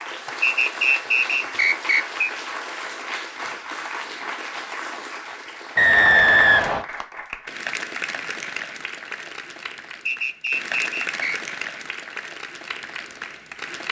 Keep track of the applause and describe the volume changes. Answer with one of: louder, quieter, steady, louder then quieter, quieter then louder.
steady.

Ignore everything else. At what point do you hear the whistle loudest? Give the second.
6 s.